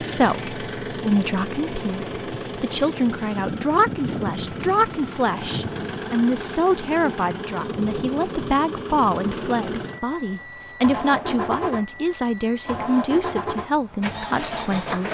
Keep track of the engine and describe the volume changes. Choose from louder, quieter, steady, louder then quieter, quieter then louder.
steady.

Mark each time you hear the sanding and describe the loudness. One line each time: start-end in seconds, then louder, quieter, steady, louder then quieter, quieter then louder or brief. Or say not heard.
not heard.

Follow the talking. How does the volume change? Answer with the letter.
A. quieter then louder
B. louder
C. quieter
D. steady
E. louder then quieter
D.